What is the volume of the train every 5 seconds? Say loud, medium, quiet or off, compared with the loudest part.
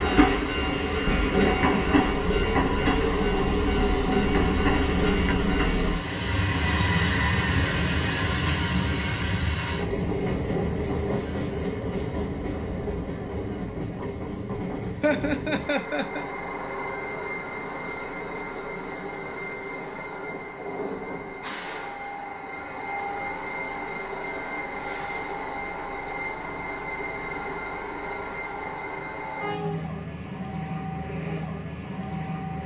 loud, loud, medium, medium, medium, medium, medium.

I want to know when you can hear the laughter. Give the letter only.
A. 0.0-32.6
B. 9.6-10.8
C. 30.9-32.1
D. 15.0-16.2
D.